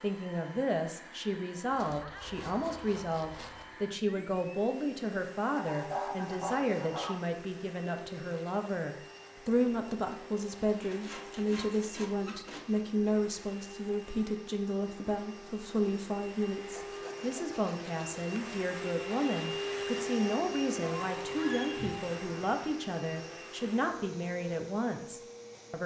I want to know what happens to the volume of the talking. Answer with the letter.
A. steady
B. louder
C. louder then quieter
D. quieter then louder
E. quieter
A.